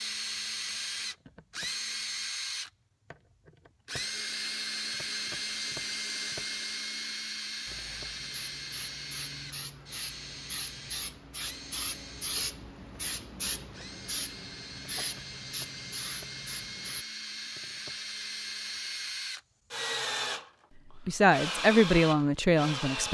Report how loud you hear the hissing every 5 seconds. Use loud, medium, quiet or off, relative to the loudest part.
off, medium, loud, loud, off.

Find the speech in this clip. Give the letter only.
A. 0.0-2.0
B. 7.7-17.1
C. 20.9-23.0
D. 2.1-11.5
C.